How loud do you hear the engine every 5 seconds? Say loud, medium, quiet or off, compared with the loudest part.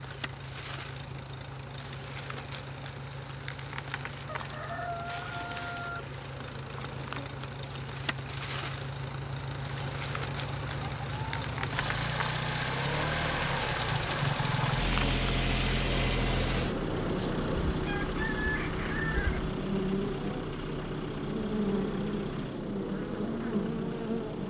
medium, medium, loud, loud, medium.